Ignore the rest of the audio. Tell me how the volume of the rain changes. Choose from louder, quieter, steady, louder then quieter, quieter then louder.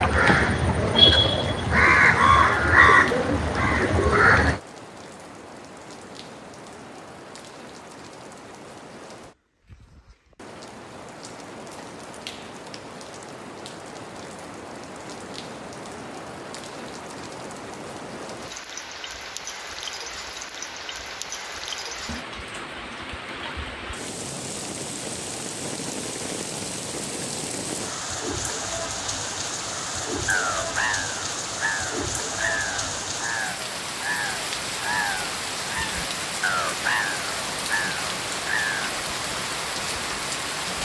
louder.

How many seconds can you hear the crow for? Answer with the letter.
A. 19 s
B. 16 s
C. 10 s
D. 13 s
D.